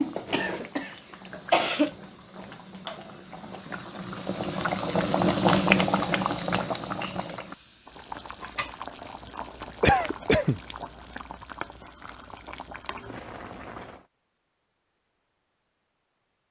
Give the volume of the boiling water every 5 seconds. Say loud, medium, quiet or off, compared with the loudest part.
medium, loud, quiet, off.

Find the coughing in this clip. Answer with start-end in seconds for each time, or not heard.
0.1-1.9, 9.8-10.6.